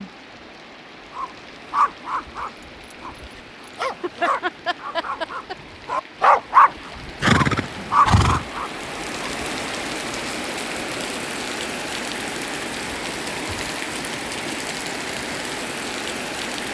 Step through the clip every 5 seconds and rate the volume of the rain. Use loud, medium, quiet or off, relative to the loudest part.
quiet, medium, loud, loud.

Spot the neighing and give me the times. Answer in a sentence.
You can hear the neighing from 7.2 to 8.4 s.